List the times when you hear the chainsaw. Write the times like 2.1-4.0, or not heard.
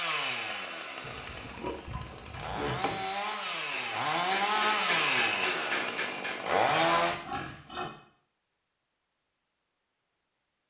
0.0-7.2.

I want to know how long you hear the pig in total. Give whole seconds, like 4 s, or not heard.
3 s.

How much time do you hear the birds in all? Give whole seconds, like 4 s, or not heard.
not heard.